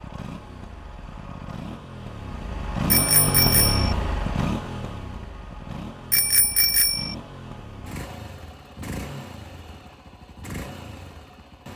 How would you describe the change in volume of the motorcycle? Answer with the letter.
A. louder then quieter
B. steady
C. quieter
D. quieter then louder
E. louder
A.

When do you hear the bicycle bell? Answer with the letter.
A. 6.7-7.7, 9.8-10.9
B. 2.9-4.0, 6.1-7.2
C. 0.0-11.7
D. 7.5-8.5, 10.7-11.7
B.